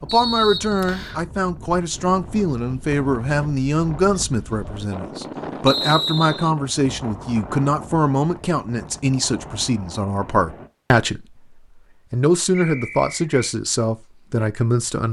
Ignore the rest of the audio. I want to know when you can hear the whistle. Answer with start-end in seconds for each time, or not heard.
0.1-1.2, 5.7-6.5, 12.5-13.6.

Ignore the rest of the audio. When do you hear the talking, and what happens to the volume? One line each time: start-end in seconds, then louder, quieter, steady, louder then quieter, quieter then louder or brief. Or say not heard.
0.0-15.0 steady.